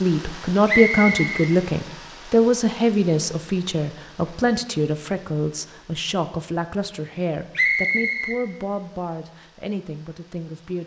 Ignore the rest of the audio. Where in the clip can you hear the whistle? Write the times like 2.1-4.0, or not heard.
0.7-1.5, 7.5-8.4.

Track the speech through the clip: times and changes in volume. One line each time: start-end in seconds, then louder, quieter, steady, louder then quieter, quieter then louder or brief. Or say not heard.
0.0-10.8 quieter.